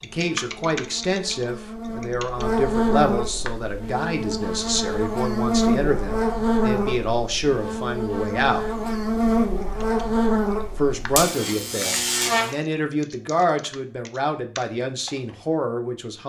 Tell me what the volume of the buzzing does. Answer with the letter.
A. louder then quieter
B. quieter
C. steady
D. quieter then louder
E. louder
E.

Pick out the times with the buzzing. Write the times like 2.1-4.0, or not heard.
0.0-12.6.